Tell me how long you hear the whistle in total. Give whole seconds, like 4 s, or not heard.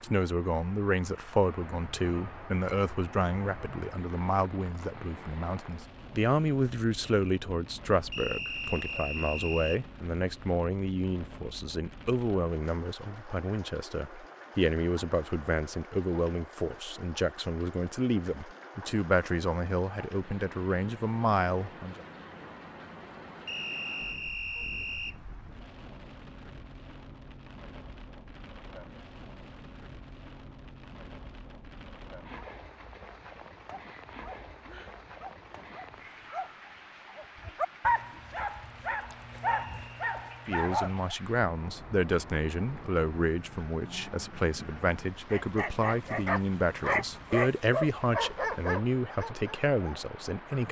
4 s.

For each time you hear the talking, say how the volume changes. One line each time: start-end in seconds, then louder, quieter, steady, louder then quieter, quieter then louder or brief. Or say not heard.
0.0-22.0 steady
40.5-50.6 steady.